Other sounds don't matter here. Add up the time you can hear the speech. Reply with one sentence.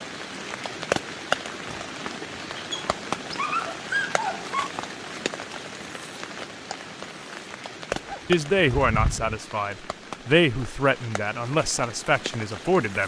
You can hear the speech for 5 seconds altogether.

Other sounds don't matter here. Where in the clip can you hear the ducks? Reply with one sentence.
You can't hear the ducks here.